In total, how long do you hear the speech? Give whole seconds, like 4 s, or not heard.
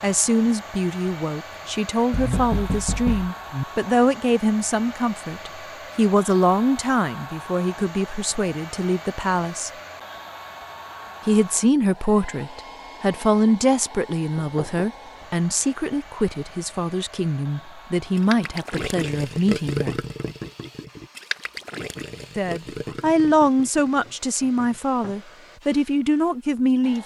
23 s.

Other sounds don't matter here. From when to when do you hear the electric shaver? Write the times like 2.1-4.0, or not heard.
not heard.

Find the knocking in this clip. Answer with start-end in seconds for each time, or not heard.
2.1-3.6, 14.3-14.9, 24.1-25.1.